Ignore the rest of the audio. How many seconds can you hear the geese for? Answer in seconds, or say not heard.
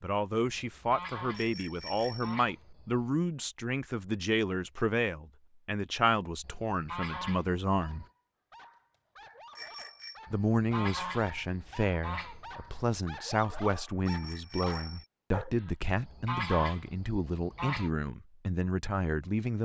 9 s.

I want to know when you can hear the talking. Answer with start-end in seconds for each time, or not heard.
0.0-8.1, 10.3-19.6.